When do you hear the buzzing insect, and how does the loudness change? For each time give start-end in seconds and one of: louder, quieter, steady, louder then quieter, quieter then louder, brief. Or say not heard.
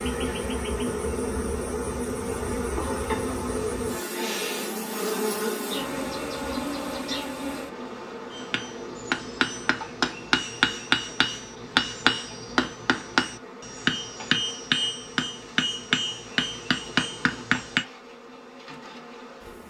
0.0-19.6 quieter.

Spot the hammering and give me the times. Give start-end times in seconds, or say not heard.
8.3-17.9.